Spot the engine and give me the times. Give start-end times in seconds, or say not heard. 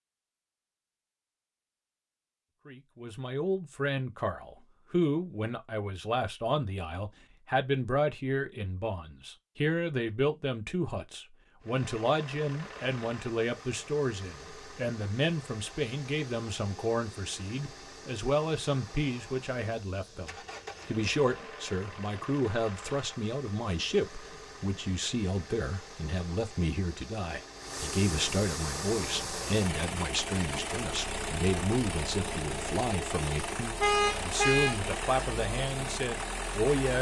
11.6-36.9.